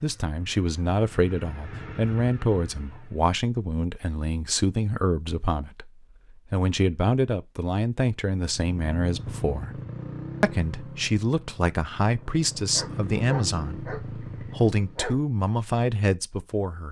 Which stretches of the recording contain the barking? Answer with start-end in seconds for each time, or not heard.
12.7-15.2.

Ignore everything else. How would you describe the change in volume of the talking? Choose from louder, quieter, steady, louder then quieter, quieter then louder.
steady.